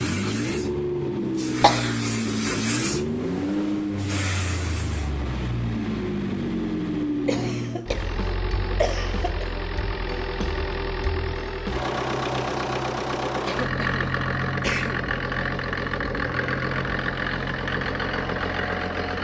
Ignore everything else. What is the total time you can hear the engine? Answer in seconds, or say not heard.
19 s.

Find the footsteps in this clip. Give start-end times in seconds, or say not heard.
not heard.